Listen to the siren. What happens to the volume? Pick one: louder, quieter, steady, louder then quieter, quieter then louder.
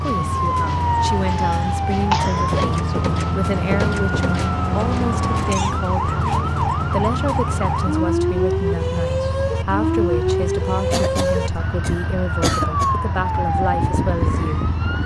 steady.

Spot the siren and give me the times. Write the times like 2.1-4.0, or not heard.
0.0-15.0.